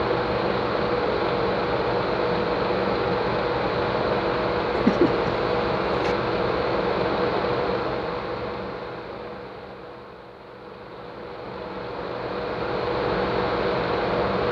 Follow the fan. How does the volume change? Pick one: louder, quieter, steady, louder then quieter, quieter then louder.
quieter then louder.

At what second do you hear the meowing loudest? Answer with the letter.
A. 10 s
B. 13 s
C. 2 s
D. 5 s
D.